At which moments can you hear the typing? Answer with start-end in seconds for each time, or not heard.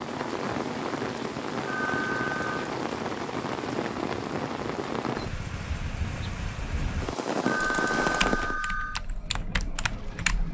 7.7-10.5.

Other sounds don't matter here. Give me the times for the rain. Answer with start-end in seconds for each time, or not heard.
0.0-8.6.